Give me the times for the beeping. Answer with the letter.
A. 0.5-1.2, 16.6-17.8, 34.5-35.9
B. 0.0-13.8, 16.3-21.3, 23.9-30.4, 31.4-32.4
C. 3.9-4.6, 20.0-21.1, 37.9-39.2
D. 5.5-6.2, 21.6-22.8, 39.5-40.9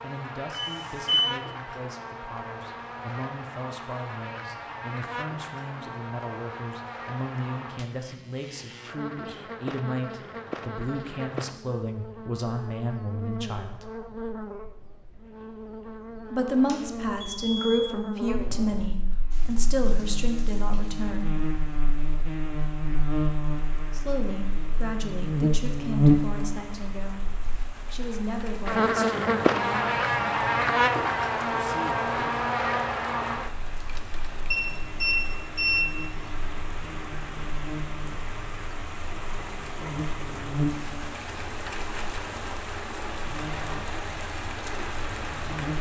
A.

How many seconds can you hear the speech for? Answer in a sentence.
The speech can be heard for 26 seconds in total.